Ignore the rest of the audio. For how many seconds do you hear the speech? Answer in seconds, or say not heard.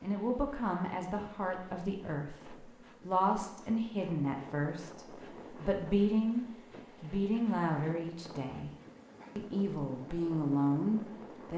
11 s.